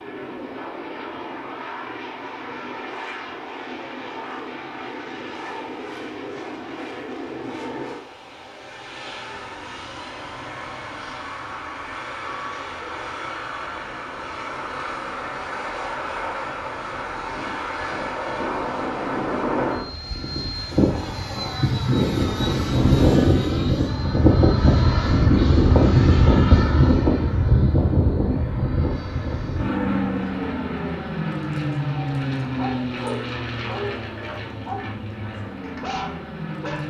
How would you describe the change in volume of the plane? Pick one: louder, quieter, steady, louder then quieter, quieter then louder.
louder then quieter.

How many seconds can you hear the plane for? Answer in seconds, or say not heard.
37 s.